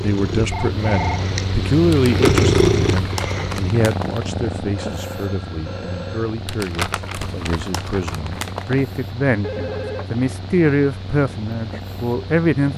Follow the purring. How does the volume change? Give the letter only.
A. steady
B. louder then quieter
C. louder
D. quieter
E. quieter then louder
D.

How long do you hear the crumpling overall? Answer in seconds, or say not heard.
5 s.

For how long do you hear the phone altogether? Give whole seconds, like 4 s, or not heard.
3 s.